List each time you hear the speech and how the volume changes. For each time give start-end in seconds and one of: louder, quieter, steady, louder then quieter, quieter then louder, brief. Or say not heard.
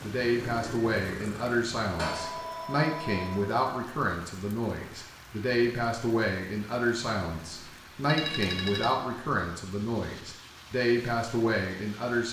0.0-12.2 steady.